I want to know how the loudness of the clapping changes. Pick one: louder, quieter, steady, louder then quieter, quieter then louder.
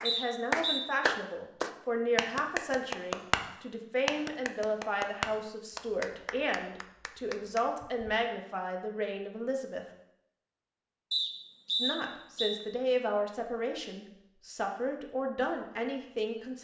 quieter.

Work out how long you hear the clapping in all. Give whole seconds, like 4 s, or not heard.
8 s.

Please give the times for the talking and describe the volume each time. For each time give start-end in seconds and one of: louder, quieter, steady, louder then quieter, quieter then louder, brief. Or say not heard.
0.0-9.8 steady
11.8-16.5 quieter then louder.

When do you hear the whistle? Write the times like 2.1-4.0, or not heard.
0.1-0.8, 11.1-12.6.